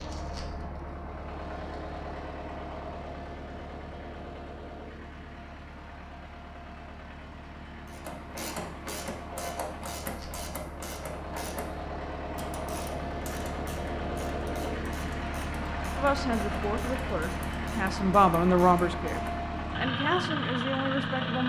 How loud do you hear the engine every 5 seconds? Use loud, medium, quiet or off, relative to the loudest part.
medium, quiet, medium, loud, loud.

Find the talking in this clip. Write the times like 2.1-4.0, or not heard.
15.9-21.4.